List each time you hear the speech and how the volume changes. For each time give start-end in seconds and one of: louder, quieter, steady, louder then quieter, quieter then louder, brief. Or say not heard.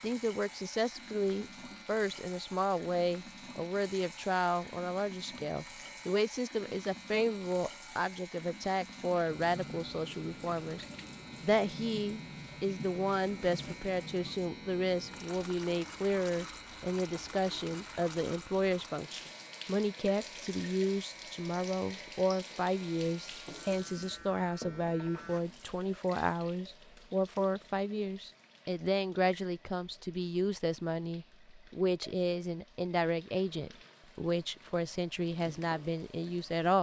0.0-36.7 steady.